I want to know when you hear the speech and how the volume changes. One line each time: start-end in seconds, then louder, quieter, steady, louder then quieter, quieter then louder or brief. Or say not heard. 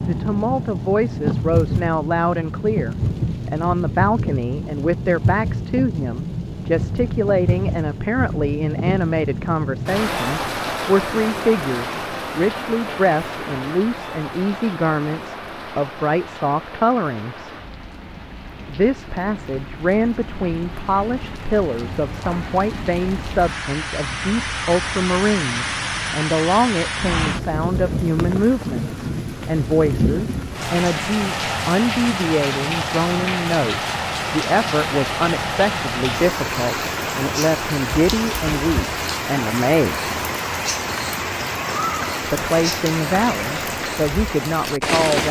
0.0-17.6 steady
18.6-40.1 steady
42.2-45.2 brief.